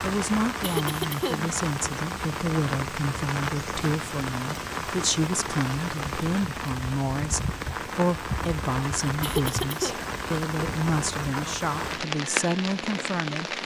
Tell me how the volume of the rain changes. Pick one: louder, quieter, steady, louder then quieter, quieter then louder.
steady.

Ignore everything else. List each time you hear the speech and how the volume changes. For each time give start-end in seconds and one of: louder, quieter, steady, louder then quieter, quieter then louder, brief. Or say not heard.
0.0-13.6 steady.